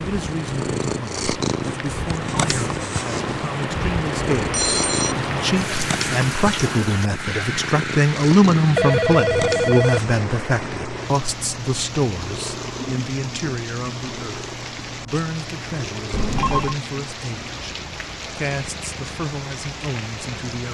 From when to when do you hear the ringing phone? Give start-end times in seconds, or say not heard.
4.5-5.2, 8.6-10.2, 16.1-16.8.